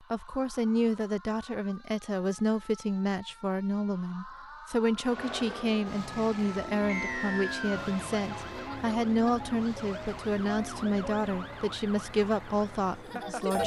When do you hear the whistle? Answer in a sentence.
You can hear the whistle from 6.8 to 8.0 s.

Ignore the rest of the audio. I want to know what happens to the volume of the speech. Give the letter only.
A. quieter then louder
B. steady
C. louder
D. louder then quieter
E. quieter
B.